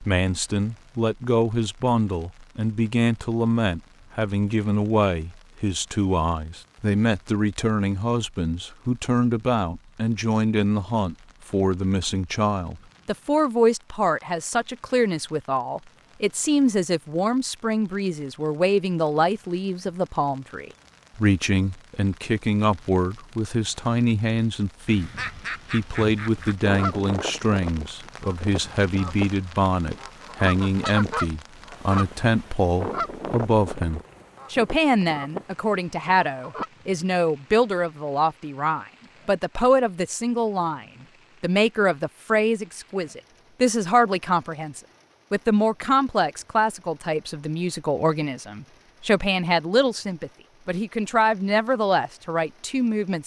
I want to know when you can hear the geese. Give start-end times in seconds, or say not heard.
24.9-36.7.